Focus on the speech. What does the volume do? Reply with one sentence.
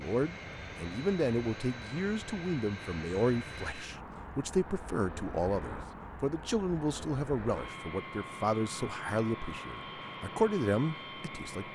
The loudness of the speech stays about the same.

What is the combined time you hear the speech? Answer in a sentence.
You can hear the speech for 12 seconds altogether.